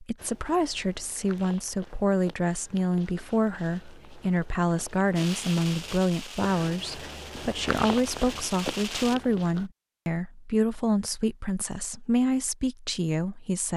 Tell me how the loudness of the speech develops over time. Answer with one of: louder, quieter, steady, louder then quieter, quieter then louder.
steady.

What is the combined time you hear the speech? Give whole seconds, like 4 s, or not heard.
14 s.